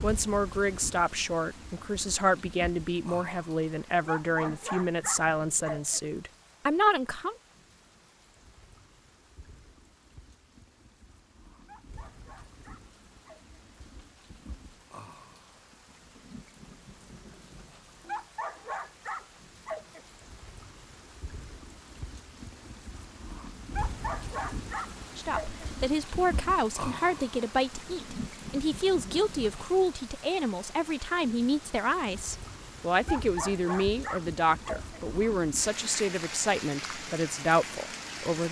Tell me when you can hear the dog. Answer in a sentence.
You can hear the dog from 4.0 to 6.0 s, from 11.6 to 13.6 s, from 18.0 to 20.1 s, from 23.7 to 25.6 s and from 33.0 to 35.0 s.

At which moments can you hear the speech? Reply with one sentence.
The speech can be heard from 0.0 to 7.3 s and from 25.1 to 38.4 s.